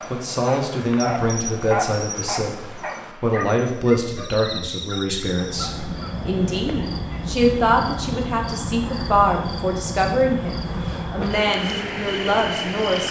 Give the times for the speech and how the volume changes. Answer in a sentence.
You can hear the speech from 0.1 to 13.0 s, at a steady volume.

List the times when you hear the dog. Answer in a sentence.
The dog can be heard from 0.0 to 6.2 s.